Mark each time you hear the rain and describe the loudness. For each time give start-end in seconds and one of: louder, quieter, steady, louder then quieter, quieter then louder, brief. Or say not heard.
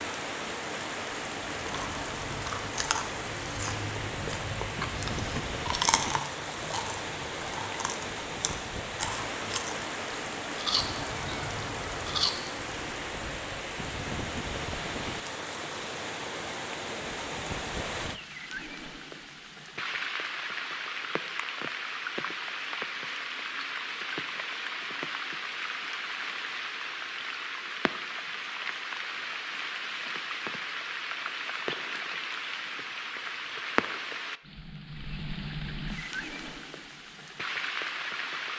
0.0-38.5 steady.